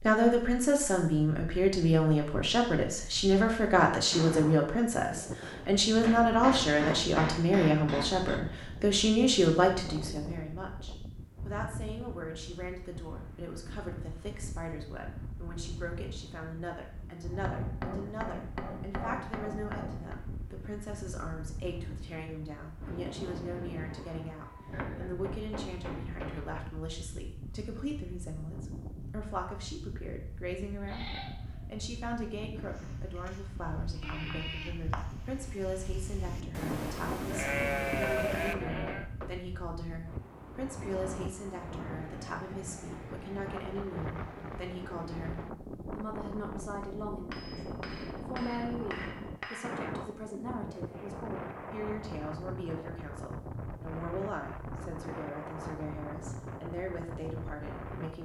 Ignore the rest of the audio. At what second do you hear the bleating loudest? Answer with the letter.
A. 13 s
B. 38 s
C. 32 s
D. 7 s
B.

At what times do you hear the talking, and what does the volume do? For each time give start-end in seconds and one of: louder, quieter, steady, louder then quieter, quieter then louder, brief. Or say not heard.
0.0-58.2 quieter.